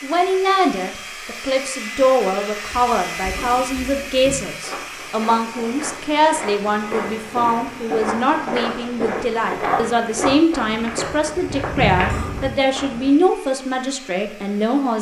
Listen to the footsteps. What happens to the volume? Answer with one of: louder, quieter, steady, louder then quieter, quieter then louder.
louder.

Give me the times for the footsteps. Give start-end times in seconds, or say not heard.
2.6-13.1.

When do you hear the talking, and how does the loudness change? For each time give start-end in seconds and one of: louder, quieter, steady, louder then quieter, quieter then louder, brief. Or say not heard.
0.0-14.9 steady.